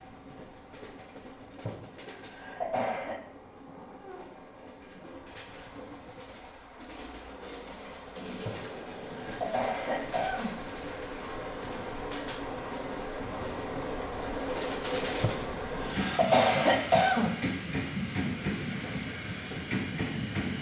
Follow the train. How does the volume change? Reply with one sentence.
The volume of the train goes up.